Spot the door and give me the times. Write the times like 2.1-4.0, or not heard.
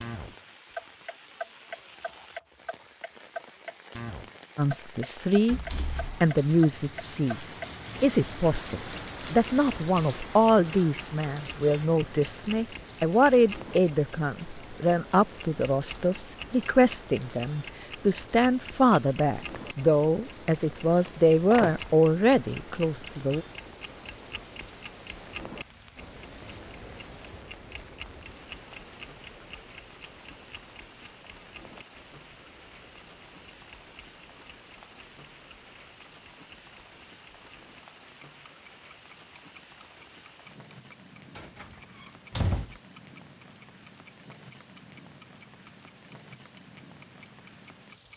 5.5-6.2, 21.1-21.8, 41.4-42.8.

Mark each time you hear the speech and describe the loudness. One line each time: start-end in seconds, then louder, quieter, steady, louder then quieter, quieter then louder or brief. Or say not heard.
4.5-5.6 brief
6.2-23.4 steady.